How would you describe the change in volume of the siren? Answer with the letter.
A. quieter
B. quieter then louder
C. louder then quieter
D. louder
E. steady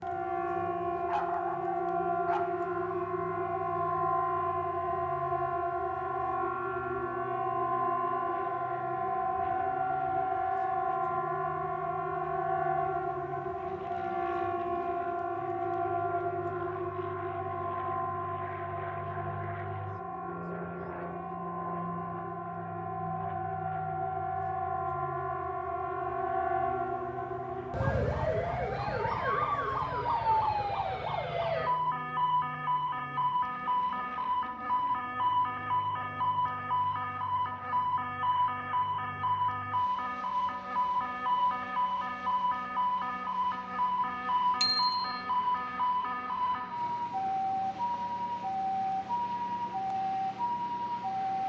E.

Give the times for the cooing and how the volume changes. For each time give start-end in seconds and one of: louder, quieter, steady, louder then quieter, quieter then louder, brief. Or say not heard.
not heard.